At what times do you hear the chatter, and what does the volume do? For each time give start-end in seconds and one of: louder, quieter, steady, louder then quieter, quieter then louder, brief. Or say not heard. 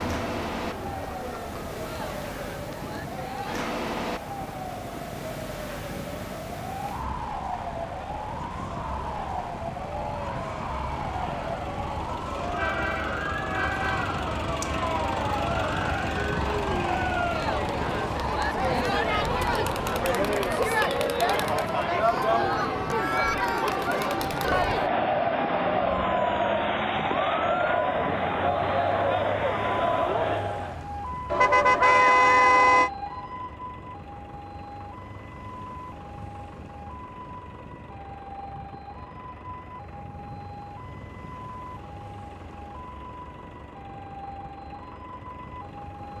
0.0-30.8 louder.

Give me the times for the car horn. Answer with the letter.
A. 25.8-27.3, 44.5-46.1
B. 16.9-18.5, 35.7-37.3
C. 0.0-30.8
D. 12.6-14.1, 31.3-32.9
D.